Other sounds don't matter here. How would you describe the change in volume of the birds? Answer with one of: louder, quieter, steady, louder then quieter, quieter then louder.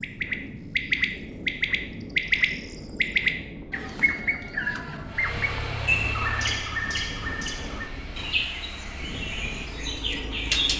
quieter.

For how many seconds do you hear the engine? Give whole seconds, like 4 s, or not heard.
6 s.